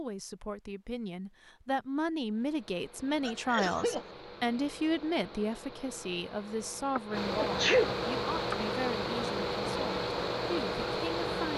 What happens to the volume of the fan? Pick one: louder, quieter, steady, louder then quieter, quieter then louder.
louder.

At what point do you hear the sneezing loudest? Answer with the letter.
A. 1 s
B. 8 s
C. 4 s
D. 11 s
B.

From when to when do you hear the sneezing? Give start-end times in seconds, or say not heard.
3.2-4.0, 7.0-8.6.